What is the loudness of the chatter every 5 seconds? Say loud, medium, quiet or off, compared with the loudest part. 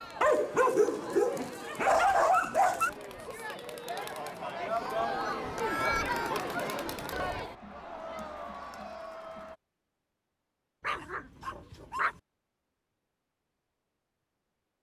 medium, loud, off.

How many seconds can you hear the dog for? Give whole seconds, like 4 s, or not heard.
4 s.